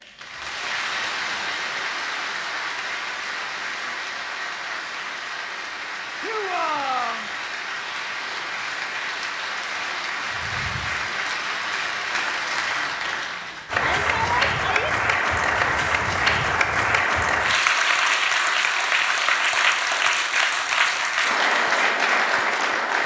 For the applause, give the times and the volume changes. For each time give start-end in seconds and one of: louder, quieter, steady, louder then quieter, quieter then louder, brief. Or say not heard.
0.0-23.0 louder.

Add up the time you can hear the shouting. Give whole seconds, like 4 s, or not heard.
2 s.